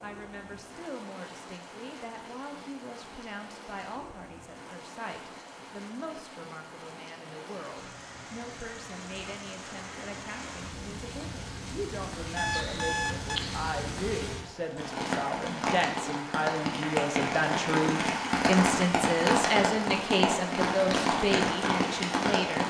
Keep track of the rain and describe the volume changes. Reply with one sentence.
The loudness of the rain goes up.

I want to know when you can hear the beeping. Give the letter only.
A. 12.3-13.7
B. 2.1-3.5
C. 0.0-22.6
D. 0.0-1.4
A.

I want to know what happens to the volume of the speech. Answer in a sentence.
The loudness of the speech goes up.